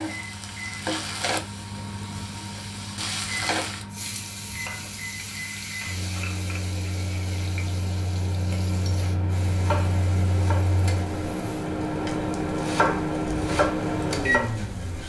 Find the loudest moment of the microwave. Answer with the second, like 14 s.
14 s.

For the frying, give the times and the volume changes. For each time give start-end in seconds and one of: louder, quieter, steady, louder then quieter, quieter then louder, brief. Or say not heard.
0.0-15.0 quieter.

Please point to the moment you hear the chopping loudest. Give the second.
13 s.